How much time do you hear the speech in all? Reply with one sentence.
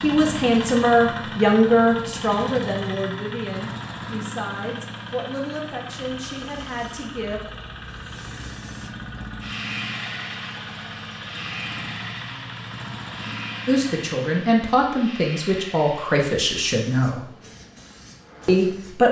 You can hear the speech for 12 seconds altogether.